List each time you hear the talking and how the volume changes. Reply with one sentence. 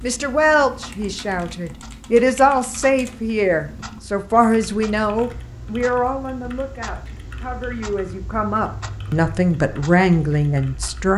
The talking can be heard from 0.0 to 11.1 s, getting quieter then louder.